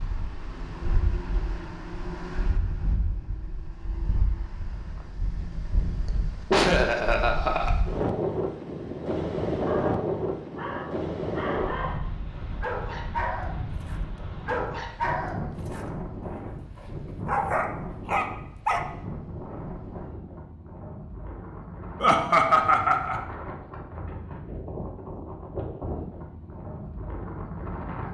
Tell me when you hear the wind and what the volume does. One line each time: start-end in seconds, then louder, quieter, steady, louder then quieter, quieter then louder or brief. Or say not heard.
0.0-28.1 louder then quieter.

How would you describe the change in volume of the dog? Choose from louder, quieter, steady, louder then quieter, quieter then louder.
louder.